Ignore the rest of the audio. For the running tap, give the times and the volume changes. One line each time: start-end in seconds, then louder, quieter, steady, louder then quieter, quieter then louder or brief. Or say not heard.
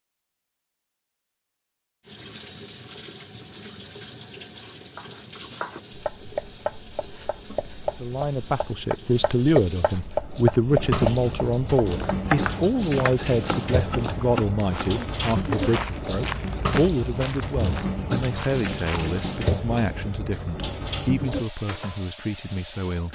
2.0-23.0 louder.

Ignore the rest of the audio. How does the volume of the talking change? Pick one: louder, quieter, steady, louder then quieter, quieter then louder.
quieter.